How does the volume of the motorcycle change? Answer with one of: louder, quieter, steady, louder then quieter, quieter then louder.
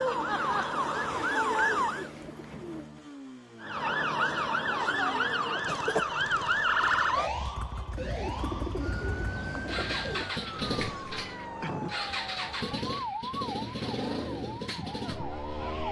louder.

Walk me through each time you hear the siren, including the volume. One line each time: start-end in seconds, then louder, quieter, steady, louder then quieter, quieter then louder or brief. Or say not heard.
0.0-2.1 brief
3.6-15.8 quieter.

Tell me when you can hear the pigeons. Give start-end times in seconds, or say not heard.
0.1-2.9, 8.0-10.3.